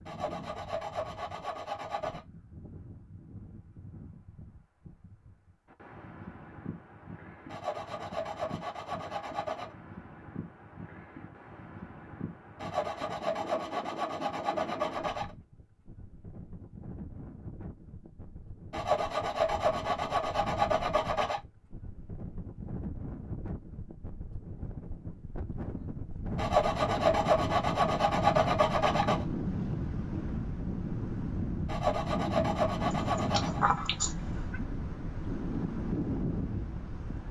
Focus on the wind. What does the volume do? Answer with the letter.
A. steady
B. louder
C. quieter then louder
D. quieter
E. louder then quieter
B.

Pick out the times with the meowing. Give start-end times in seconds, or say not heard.
32.9-34.6.